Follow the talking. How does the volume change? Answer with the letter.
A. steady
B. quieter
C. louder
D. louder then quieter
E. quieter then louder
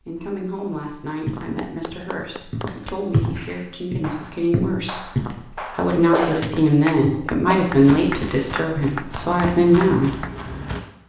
C.